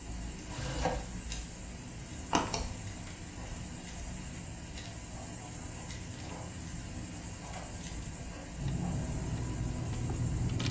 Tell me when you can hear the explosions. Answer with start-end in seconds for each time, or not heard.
not heard.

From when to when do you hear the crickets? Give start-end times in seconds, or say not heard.
0.0-10.6.